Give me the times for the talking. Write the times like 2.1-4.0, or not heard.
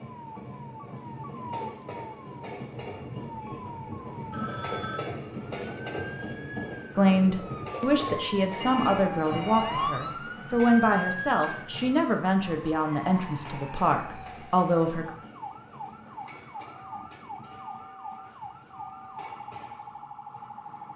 7.0-15.1.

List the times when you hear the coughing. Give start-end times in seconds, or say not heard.
not heard.